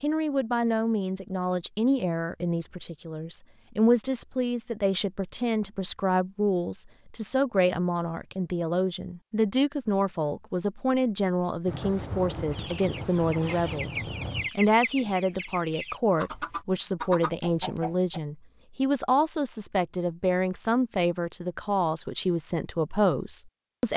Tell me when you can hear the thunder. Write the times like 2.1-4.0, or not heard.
11.7-14.5.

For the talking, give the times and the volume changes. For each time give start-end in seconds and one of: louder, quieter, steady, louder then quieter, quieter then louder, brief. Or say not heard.
0.0-23.9 steady.